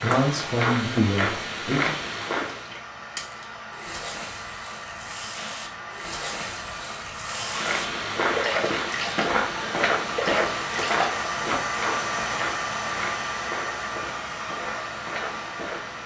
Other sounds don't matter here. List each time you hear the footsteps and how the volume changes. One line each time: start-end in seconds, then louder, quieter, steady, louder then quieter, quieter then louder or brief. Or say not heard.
0.0-2.8 brief
7.5-16.0 quieter.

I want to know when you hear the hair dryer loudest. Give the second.
12 s.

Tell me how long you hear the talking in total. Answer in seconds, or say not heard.
2 s.